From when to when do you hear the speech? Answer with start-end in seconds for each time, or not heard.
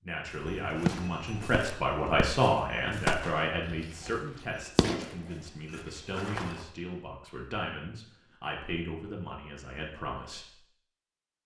0.0-10.6.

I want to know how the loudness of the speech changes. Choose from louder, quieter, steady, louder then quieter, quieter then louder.
quieter.